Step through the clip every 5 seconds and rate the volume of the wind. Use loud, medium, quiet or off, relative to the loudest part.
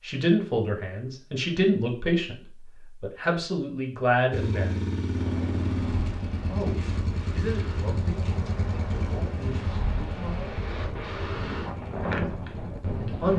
off, medium, loud.